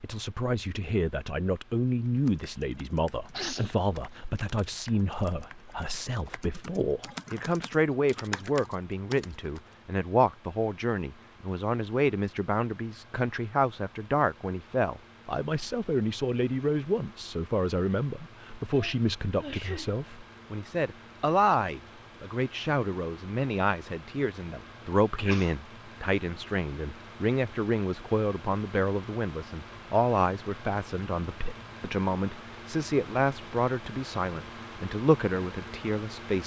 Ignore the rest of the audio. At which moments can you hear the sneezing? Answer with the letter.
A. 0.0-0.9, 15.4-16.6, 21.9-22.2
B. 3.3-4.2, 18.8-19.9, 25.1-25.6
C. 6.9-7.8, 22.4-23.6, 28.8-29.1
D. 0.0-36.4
B.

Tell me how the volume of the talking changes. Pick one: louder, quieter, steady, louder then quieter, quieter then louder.
steady.